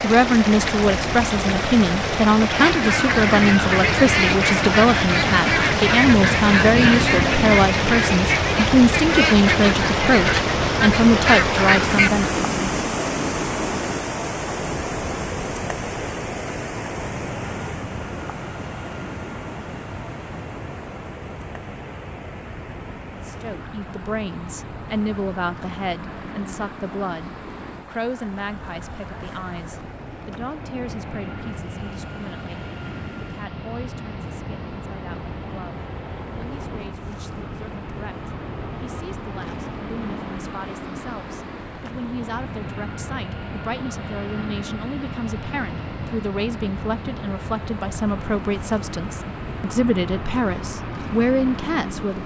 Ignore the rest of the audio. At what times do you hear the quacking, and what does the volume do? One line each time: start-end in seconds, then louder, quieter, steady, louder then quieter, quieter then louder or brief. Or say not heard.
2.5-12.3 steady.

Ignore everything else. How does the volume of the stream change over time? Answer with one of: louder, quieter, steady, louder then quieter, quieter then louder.
quieter.